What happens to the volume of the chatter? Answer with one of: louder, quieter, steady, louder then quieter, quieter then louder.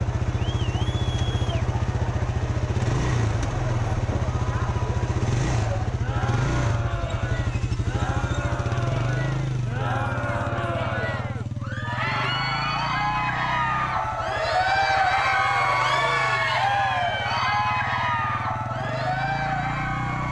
louder.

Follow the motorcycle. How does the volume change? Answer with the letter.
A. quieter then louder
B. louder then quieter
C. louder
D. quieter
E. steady
D.